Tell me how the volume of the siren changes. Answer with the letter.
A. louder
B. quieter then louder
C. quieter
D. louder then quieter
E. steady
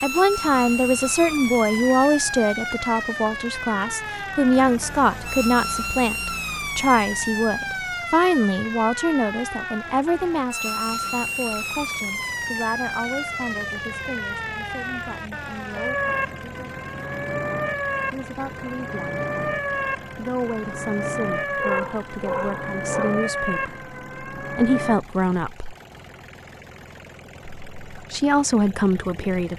E.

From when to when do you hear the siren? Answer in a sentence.
The siren can be heard from 0.0 to 25.0 s.